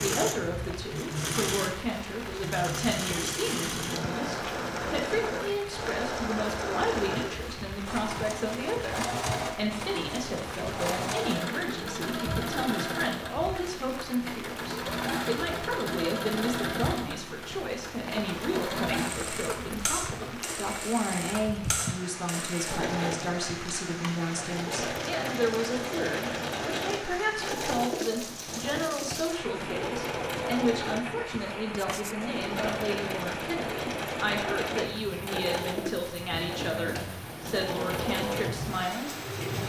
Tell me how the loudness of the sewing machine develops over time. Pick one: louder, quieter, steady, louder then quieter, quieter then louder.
steady.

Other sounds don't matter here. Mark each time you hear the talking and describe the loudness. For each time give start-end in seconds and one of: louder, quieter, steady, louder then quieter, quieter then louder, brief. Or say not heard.
0.0-39.6 steady.